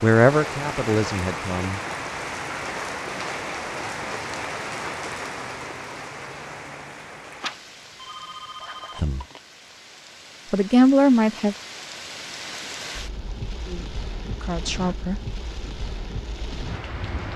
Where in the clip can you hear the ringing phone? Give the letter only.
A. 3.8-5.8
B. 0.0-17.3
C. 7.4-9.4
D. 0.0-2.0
C.